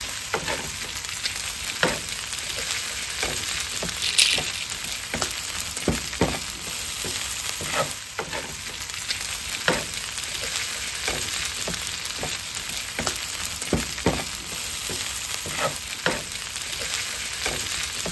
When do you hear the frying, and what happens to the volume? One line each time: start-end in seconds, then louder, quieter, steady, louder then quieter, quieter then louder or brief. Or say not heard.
0.0-18.0 steady.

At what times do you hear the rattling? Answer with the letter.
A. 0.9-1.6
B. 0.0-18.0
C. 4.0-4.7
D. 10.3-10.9
C.